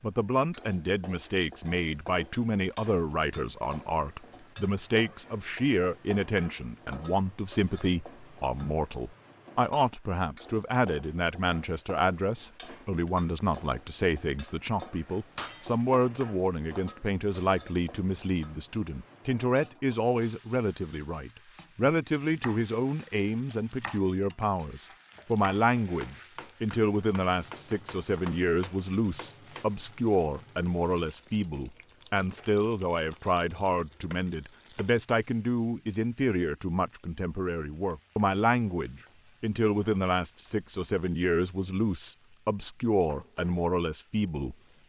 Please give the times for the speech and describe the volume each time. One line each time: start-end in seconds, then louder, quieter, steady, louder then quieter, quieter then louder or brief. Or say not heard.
0.0-44.8 steady.